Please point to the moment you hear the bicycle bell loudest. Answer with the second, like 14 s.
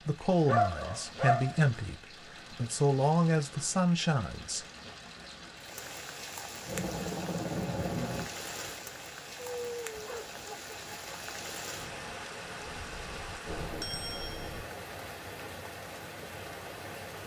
14 s.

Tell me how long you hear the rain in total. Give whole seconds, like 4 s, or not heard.
17 s.